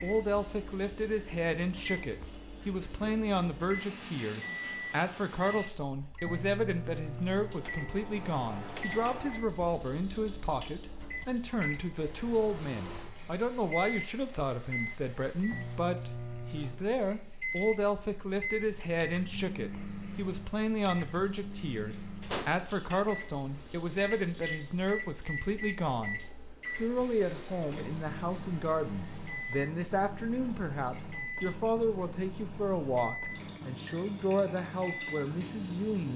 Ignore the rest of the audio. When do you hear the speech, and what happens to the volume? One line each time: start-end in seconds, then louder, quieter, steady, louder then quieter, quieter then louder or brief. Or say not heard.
0.0-36.1 steady.